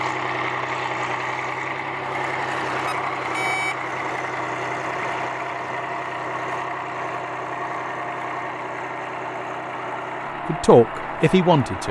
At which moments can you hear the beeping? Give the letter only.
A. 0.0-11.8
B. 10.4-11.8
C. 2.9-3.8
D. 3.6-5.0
C.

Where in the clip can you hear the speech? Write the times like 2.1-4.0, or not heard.
10.4-11.8.